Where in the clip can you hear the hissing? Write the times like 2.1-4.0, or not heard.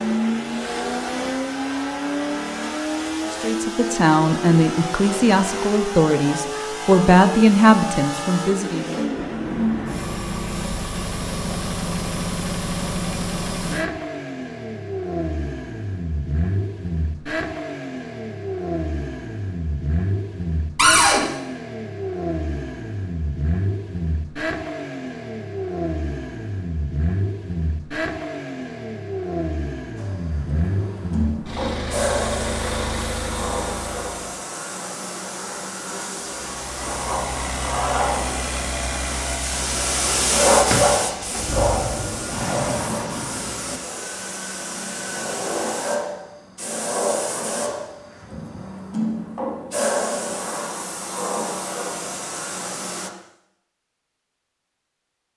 29.9-53.1.